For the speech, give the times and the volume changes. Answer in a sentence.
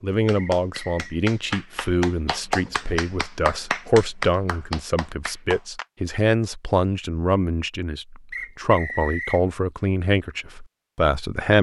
The speech can be heard from 0.0 to 11.5 s, at a steady volume.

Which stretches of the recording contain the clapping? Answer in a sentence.
The clapping can be heard from 0.2 to 5.8 s.